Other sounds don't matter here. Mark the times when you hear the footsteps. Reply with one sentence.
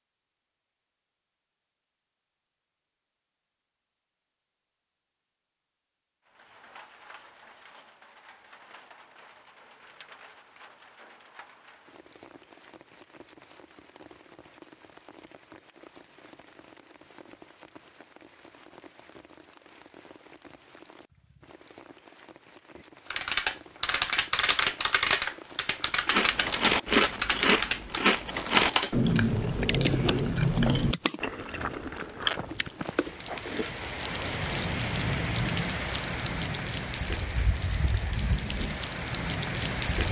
You can't hear the footsteps here.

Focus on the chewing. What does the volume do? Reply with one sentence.
The volume of the chewing goes down.